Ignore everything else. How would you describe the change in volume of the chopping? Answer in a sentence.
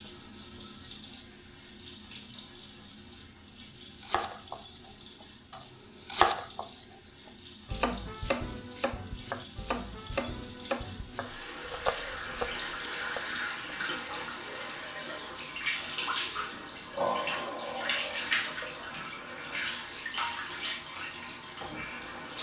The volume of the chopping goes up, then down.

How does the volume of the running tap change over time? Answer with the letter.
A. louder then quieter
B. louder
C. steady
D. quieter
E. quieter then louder
B.